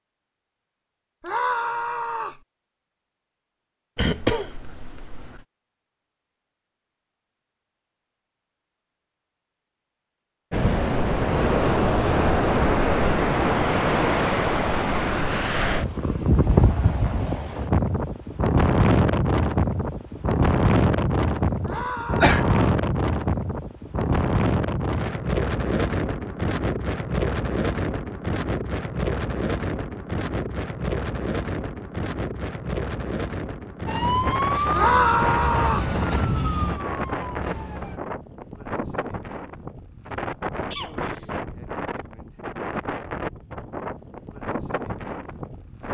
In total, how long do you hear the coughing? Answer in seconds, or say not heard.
3 s.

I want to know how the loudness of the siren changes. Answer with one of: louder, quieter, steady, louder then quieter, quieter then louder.
quieter.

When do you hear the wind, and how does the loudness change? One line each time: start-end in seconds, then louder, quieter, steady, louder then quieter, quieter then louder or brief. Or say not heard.
10.5-45.8 quieter.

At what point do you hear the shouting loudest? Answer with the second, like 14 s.
35 s.